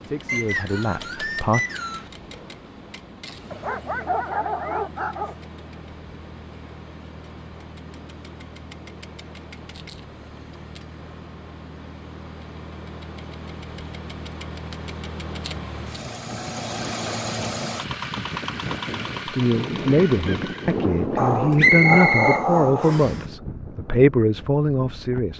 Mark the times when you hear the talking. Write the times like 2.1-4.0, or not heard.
0.0-1.6, 19.2-25.3.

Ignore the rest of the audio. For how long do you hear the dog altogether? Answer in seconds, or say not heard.
4 s.